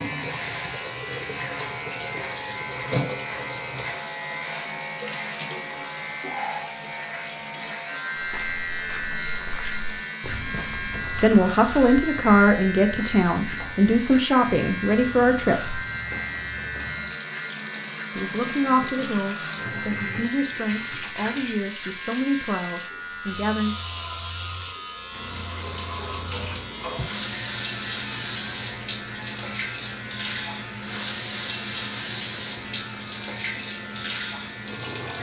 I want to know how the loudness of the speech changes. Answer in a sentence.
The loudness of the speech goes down.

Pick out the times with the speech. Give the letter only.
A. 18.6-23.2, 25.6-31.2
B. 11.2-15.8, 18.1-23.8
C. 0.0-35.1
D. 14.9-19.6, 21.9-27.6
B.